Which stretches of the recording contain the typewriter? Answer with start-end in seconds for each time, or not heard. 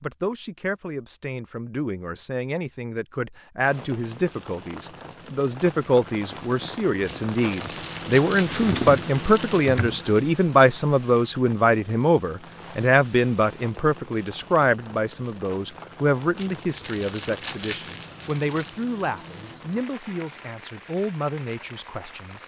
8.4-10.2.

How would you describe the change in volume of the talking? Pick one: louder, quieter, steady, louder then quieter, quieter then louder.
louder then quieter.